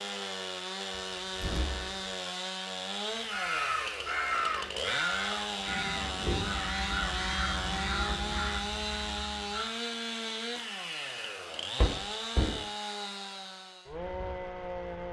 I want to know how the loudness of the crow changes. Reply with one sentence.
The loudness of the crow goes down.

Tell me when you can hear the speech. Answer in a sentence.
The speech can't be heard in this clip.